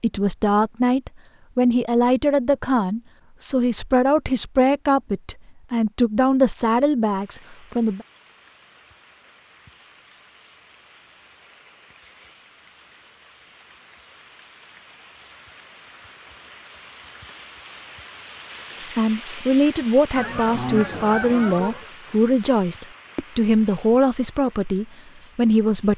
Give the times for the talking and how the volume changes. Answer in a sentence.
The talking can be heard from 0.0 to 8.1 s, at a steady volume; and from 18.9 to 25.9 s, at a steady volume.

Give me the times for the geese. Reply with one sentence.
The geese can be heard from 20.1 to 21.9 s.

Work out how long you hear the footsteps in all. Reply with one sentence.
The footsteps can't be heard in this clip.